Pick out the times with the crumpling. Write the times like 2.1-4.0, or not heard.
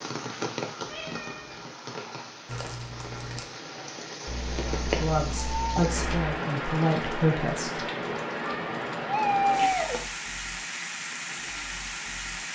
2.5-3.5, 9.5-10.1.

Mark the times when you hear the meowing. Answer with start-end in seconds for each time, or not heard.
0.8-1.6, 4.2-6.2, 8.3-10.0.